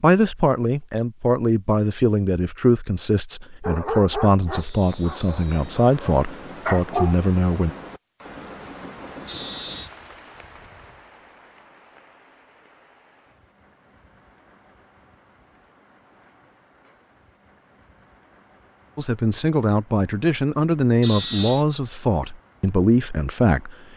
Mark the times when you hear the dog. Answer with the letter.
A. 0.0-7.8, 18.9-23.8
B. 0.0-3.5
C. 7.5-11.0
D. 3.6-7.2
D.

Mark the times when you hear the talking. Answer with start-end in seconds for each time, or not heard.
0.0-7.8, 18.9-23.8.